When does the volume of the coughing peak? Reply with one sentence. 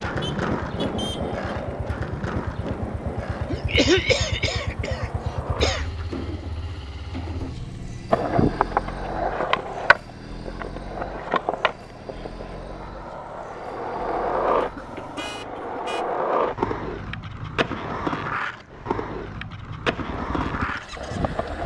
The volume of the coughing peaks at 4 seconds.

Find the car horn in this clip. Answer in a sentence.
You can hear the car horn from 0.2 to 1.4 s, from 7.3 to 8.2 s and from 14.8 to 16.1 s.